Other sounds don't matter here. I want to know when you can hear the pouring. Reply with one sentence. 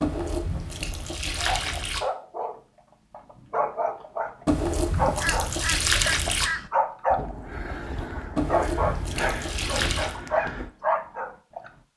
The pouring can be heard from 0.0 to 2.0 s, from 4.5 to 6.5 s and from 8.3 to 10.2 s.